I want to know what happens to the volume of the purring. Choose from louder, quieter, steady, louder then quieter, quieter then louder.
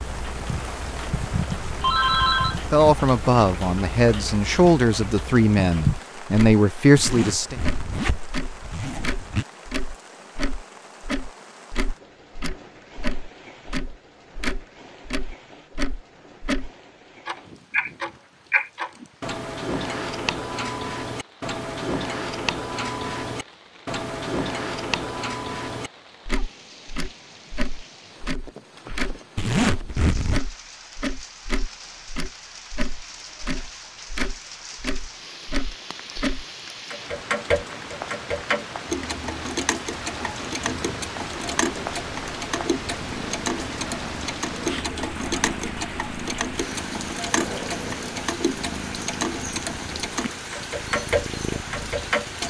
steady.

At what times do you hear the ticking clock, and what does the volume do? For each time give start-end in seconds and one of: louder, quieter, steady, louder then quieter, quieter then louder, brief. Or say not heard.
0.0-52.4 steady.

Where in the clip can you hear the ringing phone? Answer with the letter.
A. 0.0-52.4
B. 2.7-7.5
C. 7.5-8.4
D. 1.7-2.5
D.